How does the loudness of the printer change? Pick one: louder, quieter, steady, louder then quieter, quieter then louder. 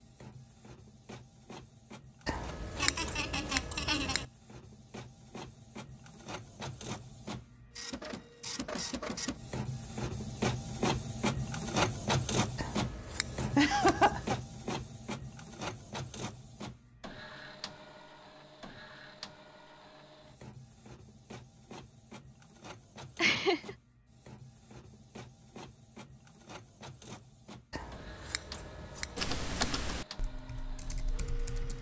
louder then quieter.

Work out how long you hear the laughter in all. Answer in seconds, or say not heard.
3 s.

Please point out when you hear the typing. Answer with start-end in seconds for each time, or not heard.
29.1-31.7.